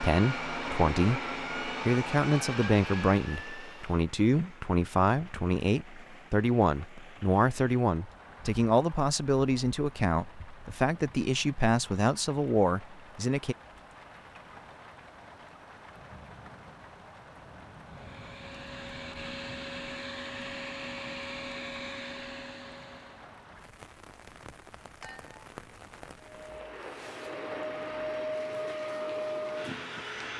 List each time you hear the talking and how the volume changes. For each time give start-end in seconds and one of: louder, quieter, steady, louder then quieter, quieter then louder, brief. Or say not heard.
0.0-13.6 steady.